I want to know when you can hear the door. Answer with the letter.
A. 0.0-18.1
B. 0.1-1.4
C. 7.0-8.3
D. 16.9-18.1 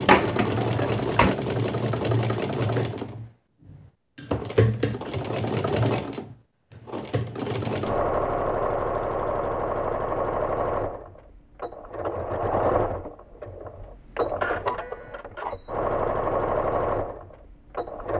B.